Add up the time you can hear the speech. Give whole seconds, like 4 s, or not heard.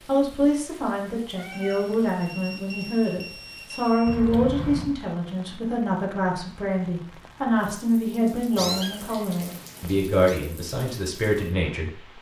12 s.